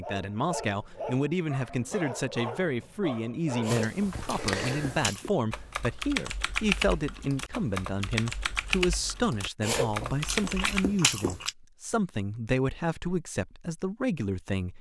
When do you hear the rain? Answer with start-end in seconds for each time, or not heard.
not heard.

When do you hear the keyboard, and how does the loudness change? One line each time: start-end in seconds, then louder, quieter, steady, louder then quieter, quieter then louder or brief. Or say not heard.
3.6-10.8 steady.